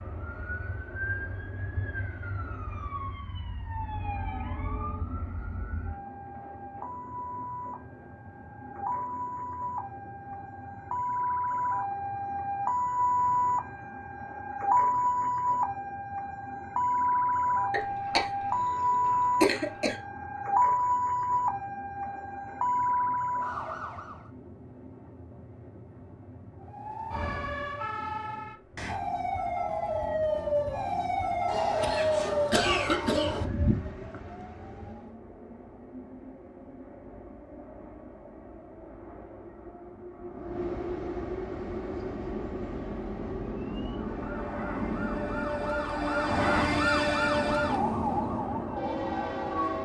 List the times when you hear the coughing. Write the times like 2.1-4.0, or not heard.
17.7-19.9, 31.4-33.5.